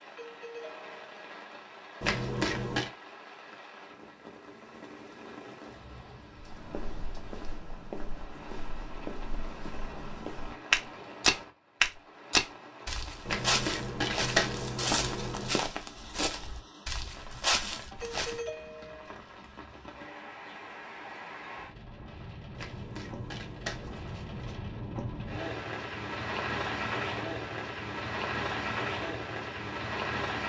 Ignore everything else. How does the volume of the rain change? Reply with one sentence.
The volume of the rain goes up.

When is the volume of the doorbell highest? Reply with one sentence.
The volume of the doorbell peaks at 18 seconds.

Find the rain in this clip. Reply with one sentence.
You can hear the rain from 0.0 to 30.4 s.